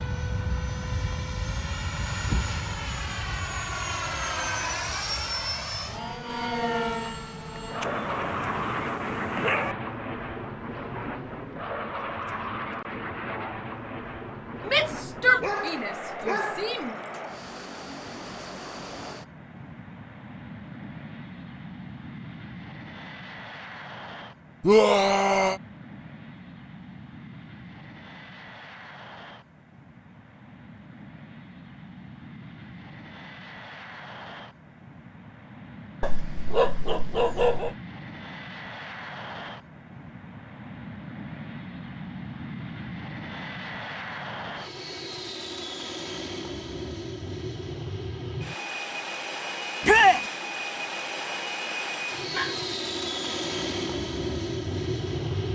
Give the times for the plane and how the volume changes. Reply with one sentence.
You can hear the plane from 0.0 to 55.5 s, getting quieter then louder.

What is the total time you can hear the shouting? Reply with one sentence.
You can hear the shouting for 4 seconds altogether.